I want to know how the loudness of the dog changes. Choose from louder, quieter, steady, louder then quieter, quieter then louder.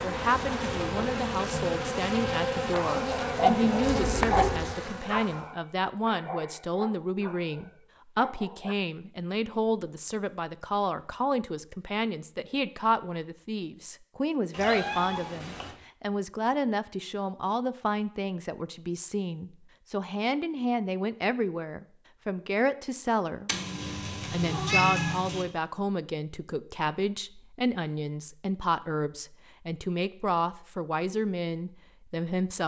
quieter.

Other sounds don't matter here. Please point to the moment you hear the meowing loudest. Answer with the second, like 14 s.
25 s.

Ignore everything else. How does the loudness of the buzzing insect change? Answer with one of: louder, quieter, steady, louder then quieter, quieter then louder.
steady.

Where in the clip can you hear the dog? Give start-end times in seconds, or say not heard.
2.7-8.8.